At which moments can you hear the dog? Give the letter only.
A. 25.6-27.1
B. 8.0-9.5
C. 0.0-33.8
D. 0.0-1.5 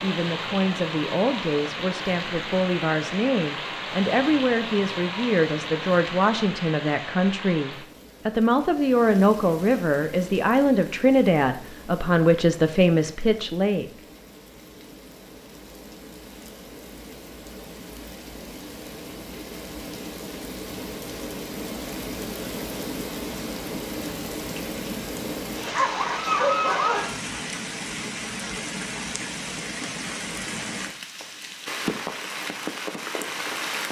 A.